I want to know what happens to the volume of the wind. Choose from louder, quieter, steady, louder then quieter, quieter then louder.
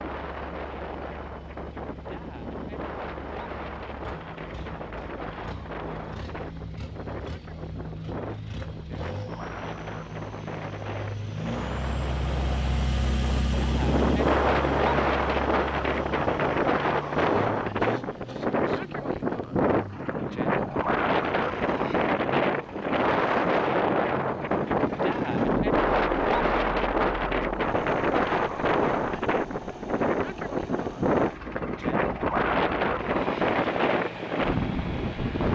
louder.